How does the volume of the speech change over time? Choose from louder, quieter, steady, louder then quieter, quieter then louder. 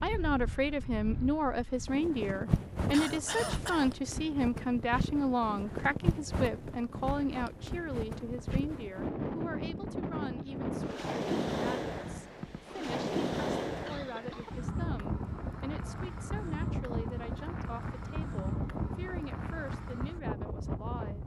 quieter.